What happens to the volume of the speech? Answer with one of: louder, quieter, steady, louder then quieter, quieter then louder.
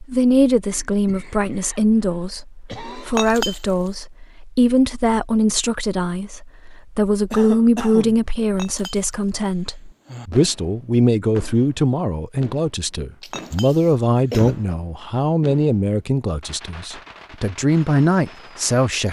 steady.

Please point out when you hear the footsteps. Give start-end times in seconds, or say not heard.
not heard.